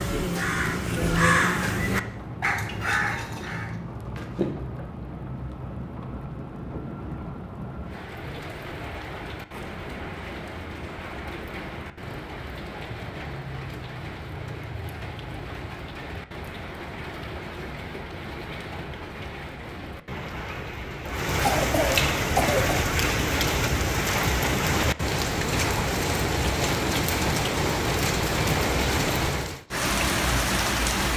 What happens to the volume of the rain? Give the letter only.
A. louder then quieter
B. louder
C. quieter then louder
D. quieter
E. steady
B.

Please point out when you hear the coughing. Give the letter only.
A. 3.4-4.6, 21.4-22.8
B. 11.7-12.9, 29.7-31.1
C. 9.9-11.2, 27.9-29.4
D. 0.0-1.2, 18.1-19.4
A.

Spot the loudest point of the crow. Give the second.
1 s.